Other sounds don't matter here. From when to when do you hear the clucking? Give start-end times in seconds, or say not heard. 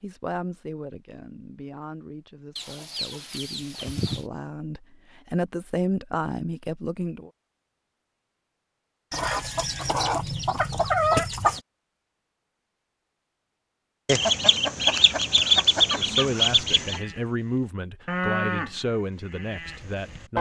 2.5-4.2, 9.1-11.6, 14.1-17.0.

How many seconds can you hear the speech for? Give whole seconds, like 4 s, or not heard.
12 s.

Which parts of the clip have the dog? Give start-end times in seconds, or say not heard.
not heard.